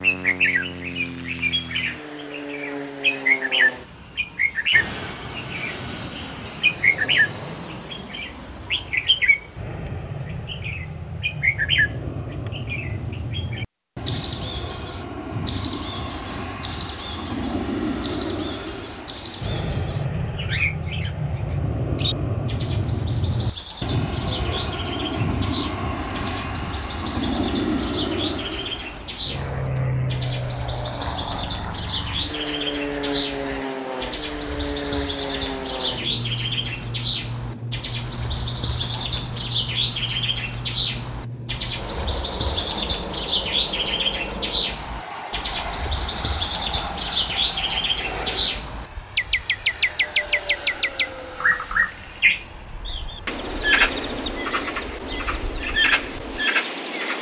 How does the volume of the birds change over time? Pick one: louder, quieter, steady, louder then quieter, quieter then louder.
quieter then louder.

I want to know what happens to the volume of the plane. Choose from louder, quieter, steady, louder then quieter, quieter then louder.
louder then quieter.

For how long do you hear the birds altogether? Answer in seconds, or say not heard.
56 s.